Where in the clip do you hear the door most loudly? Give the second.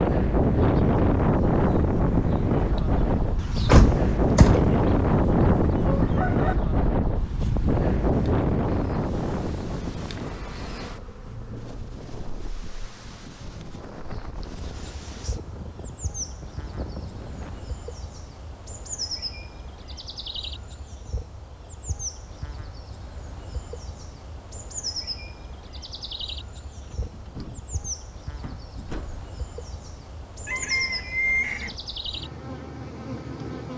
4 s.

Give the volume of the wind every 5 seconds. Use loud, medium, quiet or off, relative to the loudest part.
loud, loud, quiet, quiet, off, off, off.